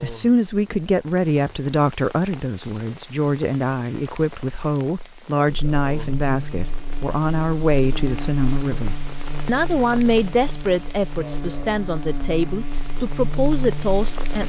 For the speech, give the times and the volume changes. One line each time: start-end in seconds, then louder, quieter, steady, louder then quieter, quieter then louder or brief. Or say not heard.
0.0-14.4 steady.